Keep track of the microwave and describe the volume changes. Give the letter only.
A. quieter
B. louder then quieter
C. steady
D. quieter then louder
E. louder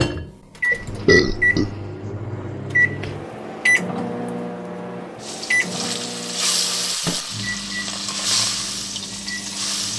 A.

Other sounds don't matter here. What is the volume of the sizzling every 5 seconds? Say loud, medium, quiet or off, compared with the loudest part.
off, loud.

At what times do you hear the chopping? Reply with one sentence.
The chopping can't be heard in this clip.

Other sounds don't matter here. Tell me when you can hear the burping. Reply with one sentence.
You can hear the burping from 0.7 to 1.8 s.